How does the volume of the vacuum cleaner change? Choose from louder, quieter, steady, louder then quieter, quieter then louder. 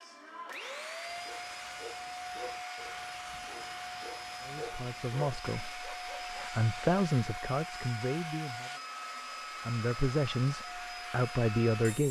steady.